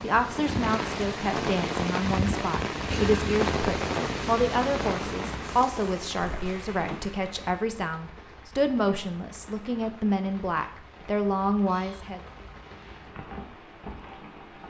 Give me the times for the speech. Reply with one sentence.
You can hear the speech from 0.0 to 12.2 s.